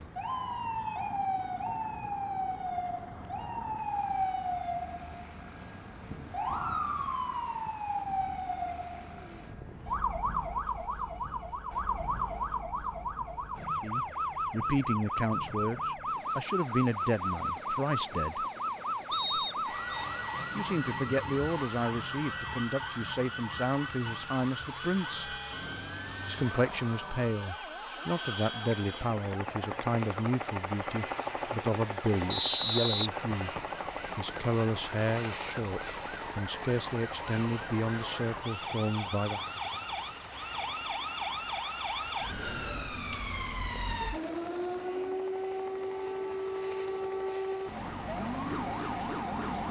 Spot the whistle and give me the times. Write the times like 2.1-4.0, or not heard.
19.1-20.1, 32.3-33.6.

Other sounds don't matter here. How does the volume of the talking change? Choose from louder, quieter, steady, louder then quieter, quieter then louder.
steady.